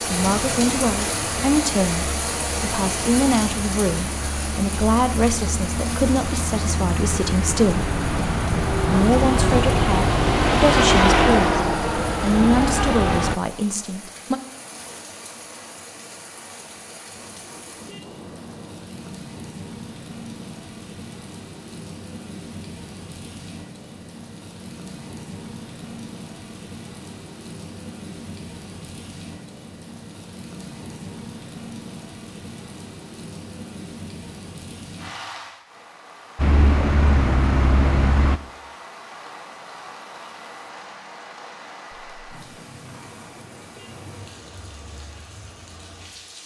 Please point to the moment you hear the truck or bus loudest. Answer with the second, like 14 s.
11 s.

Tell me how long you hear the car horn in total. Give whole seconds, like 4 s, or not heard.
4 s.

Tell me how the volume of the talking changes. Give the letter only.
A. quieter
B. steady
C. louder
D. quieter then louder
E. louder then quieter
B.